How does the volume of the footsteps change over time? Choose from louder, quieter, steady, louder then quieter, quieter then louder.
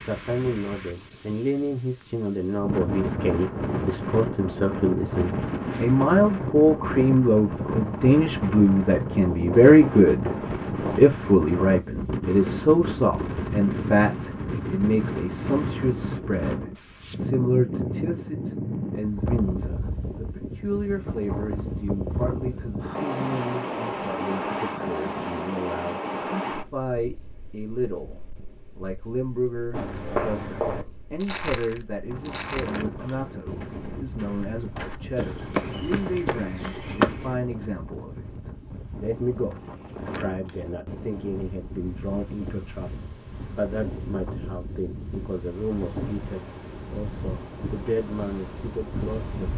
quieter then louder.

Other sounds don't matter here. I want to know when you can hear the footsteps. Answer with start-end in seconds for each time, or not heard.
29.7-37.4.